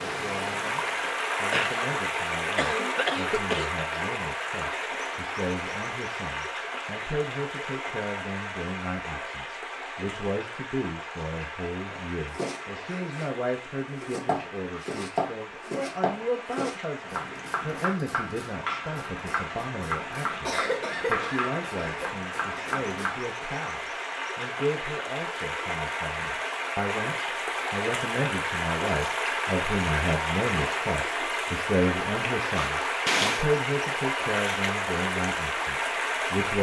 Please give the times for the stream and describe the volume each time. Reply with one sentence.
The stream can be heard from 0.0 to 36.5 s, getting quieter then louder.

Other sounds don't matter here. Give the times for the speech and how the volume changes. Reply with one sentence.
The speech can be heard from 0.0 to 36.5 s, getting louder.